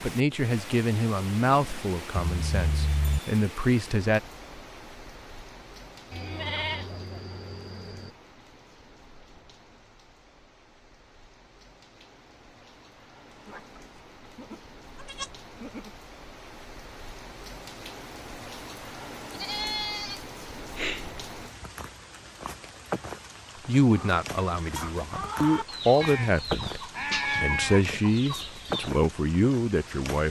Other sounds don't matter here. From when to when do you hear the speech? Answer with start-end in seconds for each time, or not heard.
0.0-4.2, 23.6-30.2.